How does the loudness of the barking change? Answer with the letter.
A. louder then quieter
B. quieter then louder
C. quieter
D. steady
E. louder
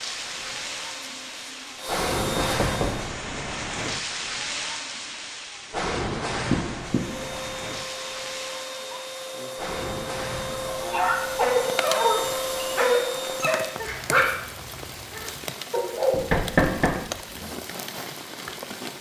B.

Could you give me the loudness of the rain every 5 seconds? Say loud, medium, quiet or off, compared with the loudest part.
loud, loud, medium, medium.